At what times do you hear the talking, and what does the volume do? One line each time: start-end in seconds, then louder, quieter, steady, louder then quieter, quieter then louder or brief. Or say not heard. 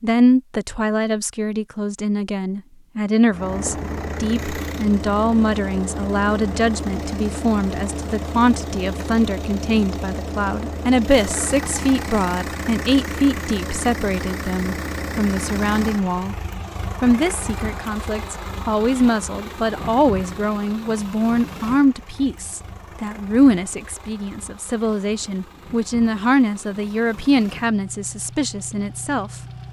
0.0-16.4 steady
17.0-29.4 steady.